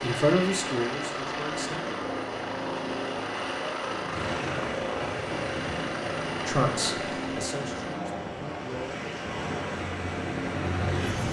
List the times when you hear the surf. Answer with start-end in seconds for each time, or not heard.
4.0-11.2.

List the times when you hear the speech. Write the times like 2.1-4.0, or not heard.
0.0-1.8, 6.5-9.0.